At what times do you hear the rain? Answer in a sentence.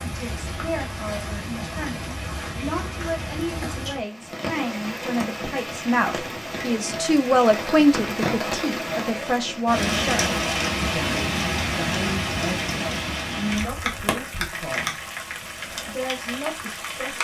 You can hear the rain from 0.0 to 17.1 s.